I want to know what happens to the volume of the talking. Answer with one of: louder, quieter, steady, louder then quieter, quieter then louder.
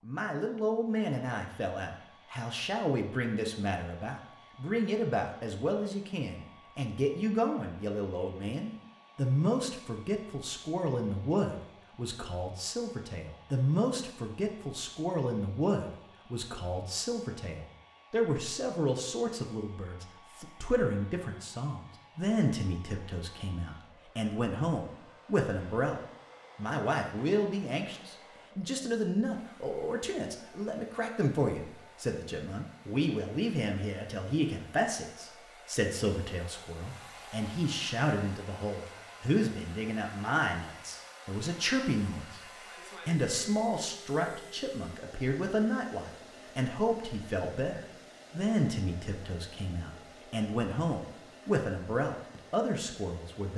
steady.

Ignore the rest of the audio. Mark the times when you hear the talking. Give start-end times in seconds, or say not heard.
0.0-53.5.